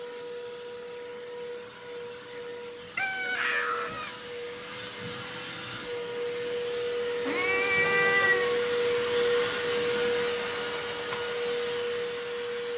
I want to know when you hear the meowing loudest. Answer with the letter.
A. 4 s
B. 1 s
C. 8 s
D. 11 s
C.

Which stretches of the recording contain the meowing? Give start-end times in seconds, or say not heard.
3.0-4.1, 7.2-8.6.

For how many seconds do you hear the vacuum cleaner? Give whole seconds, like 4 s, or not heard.
13 s.